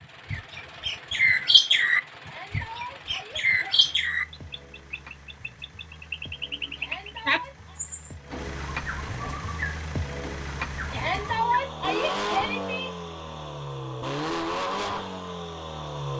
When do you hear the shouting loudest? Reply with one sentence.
The loudest moment of the shouting is at 11 seconds.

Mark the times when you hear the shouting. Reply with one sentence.
The shouting can be heard from 2.2 to 3.8 s, from 6.8 to 7.8 s and from 10.9 to 12.9 s.